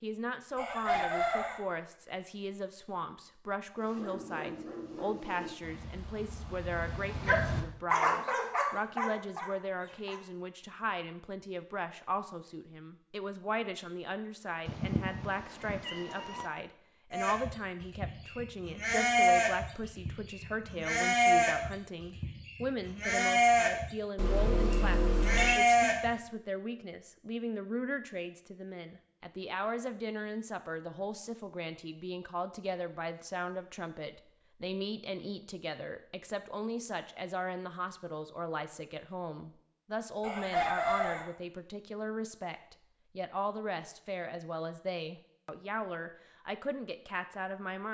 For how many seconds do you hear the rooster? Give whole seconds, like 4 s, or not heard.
2 s.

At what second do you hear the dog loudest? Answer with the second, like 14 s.
8 s.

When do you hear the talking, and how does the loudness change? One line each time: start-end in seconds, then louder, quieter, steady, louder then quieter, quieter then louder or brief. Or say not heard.
0.0-47.8 steady.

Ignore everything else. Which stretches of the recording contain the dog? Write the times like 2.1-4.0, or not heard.
3.8-10.2.